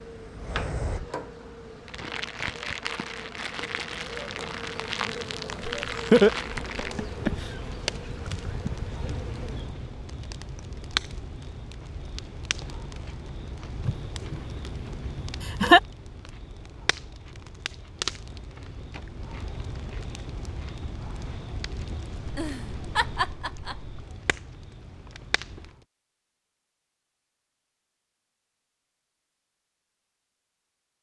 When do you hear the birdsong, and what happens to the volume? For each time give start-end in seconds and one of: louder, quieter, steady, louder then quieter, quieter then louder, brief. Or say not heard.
not heard.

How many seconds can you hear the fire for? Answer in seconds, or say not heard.
26 s.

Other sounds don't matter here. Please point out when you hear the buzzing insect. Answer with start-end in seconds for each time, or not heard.
0.0-9.8.